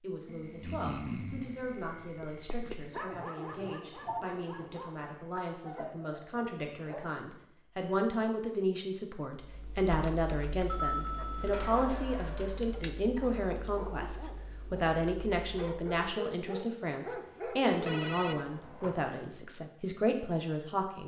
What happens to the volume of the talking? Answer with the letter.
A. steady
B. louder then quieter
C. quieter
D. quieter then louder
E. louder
E.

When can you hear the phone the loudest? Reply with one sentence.
The loudest moment of the phone is at 11 seconds.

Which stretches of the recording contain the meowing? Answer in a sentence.
You can't hear the meowing here.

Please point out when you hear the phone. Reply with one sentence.
You can hear the phone from 3.1 to 4.3 s, from 10.7 to 11.9 s and from 17.7 to 19.1 s.